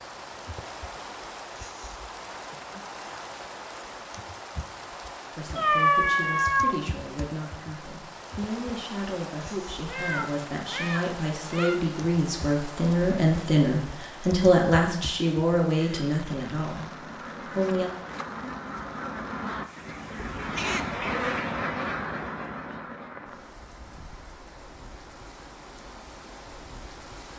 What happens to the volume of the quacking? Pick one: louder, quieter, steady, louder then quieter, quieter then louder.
louder then quieter.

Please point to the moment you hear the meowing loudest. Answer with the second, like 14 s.
6 s.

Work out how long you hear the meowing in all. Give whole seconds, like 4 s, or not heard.
4 s.